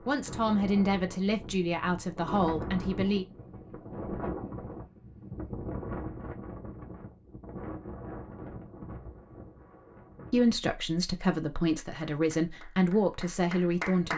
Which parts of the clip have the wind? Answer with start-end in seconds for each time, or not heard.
0.0-10.6.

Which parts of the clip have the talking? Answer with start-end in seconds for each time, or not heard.
0.1-3.2, 10.3-14.1.